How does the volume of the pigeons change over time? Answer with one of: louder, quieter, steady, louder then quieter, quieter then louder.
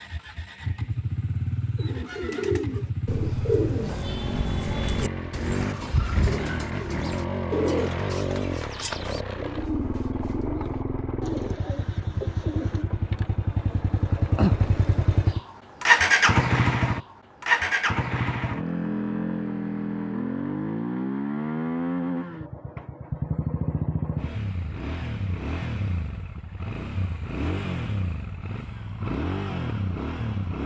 quieter.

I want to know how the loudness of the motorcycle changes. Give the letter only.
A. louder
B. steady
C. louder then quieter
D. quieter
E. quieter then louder
C.